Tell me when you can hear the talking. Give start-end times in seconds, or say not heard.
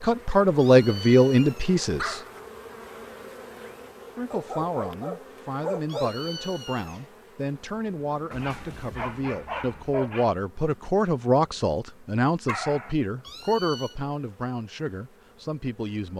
0.0-2.2, 4.2-16.1.